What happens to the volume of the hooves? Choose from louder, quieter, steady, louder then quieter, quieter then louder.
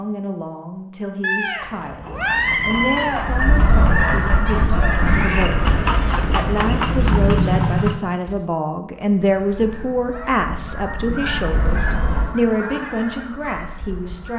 louder.